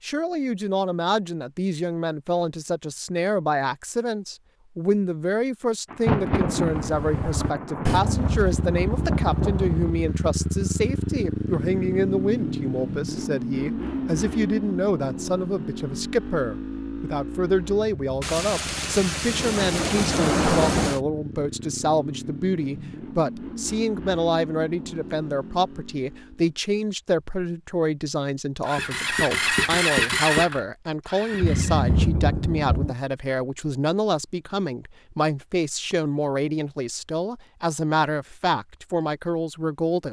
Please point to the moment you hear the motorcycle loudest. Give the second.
30 s.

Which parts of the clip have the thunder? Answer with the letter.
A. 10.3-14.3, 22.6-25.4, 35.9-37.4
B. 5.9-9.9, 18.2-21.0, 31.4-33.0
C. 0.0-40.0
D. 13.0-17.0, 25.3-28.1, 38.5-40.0
B.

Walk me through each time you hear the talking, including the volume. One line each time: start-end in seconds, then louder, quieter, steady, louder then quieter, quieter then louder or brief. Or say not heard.
0.0-40.0 steady.